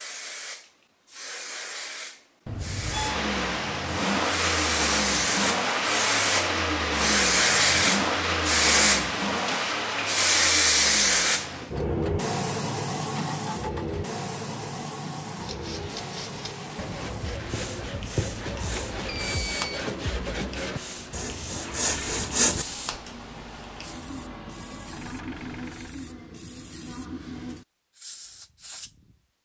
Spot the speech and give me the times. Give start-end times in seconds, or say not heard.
not heard.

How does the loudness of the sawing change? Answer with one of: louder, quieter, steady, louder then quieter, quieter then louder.
louder.